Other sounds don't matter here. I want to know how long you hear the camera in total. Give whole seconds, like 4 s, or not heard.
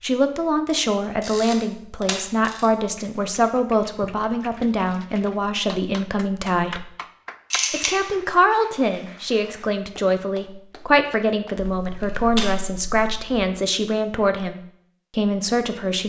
4 s.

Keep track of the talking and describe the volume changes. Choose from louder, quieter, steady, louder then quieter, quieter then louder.
steady.